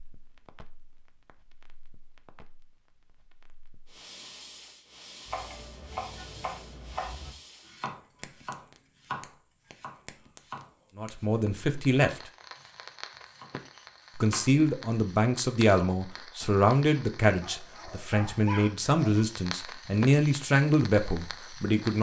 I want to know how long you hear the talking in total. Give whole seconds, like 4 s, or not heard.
9 s.